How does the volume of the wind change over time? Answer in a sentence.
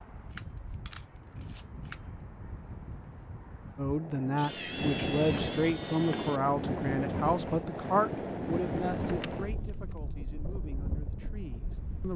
The volume of the wind goes up, then down.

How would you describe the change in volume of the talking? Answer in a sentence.
The volume of the talking goes down.